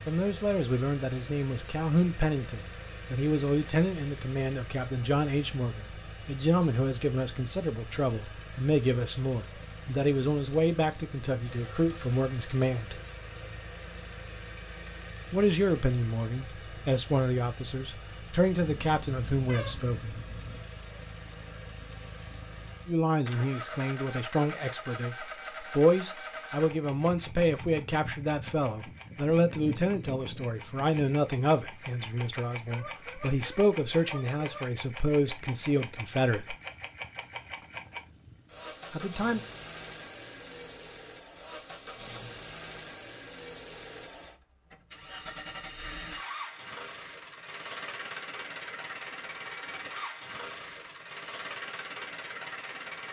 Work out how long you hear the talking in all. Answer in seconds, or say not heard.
32 s.